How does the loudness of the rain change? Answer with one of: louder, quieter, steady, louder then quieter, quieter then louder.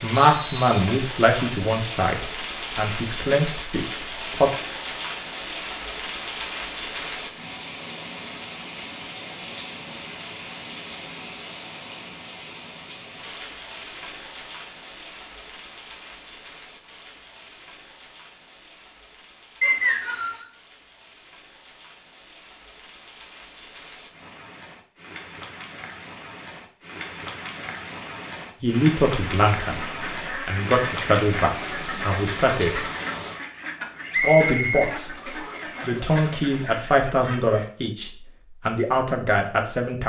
quieter then louder.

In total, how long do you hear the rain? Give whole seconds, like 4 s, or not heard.
33 s.